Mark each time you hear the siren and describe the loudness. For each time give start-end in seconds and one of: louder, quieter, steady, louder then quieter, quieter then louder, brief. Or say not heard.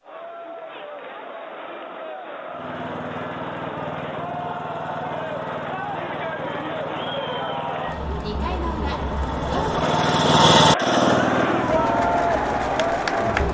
not heard.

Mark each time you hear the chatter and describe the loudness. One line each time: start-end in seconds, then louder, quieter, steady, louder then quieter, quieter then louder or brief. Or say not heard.
0.0-13.5 louder.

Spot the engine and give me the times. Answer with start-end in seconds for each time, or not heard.
2.5-13.5.